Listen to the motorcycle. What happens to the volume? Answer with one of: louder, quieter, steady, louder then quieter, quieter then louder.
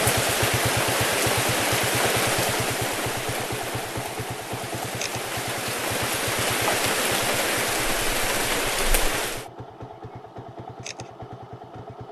quieter.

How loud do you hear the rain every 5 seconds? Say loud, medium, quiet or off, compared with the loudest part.
loud, loud, off.